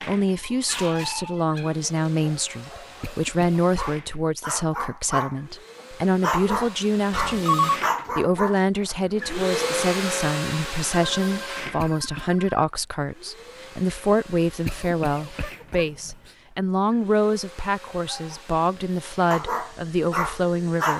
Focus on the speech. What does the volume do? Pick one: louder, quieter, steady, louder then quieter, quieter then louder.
steady.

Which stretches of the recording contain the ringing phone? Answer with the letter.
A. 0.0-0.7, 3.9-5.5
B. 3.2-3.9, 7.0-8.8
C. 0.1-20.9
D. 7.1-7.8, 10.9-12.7
D.